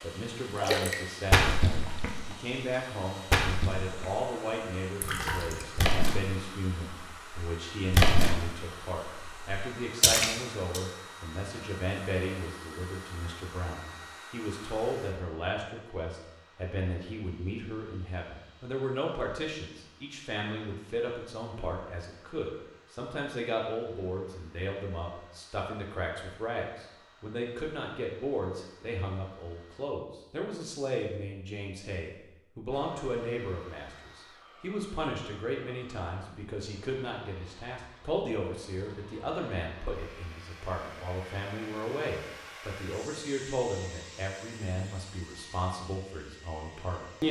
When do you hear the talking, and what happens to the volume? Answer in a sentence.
The talking can be heard from 0.0 to 47.2 s, at a steady volume.